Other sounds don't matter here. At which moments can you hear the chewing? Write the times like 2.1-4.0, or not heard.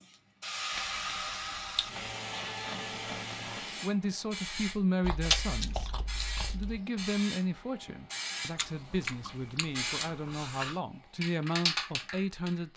0.7-2.0, 5.0-6.8, 8.6-10.8.